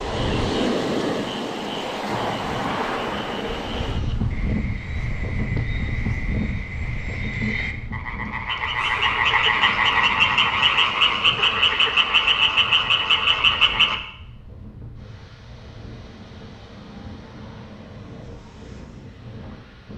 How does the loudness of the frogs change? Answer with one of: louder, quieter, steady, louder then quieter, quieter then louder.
louder.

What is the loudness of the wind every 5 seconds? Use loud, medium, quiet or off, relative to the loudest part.
loud, medium, quiet, quiet.